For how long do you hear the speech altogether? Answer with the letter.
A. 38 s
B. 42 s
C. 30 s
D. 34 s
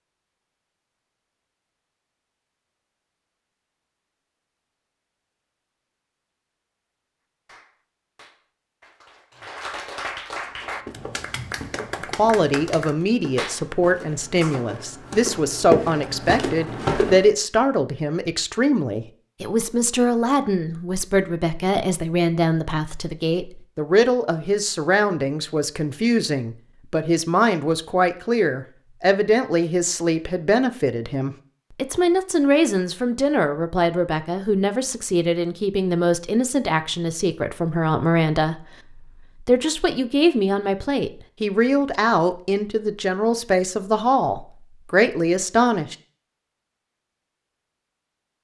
D.